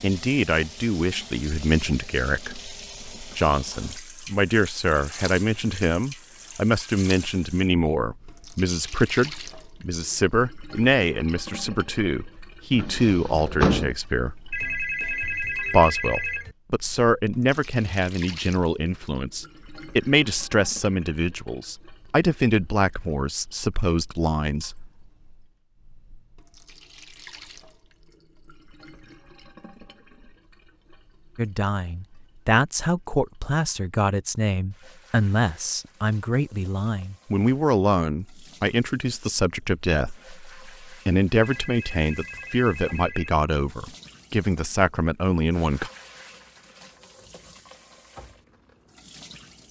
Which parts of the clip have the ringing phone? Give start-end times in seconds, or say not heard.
14.5-16.6, 41.4-43.4.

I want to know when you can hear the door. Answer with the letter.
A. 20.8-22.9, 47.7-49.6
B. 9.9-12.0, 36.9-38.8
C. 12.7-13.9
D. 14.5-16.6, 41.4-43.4
C.